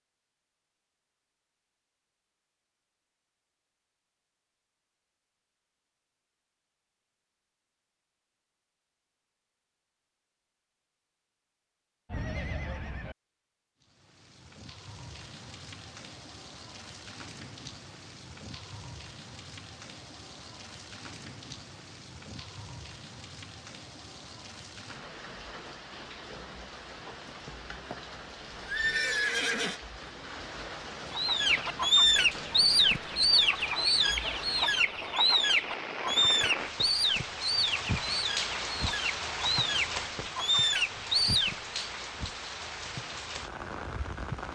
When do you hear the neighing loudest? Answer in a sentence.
The volume of the neighing peaks at 29 seconds.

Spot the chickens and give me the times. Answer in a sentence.
The chickens can be heard from 31.1 to 41.8 s.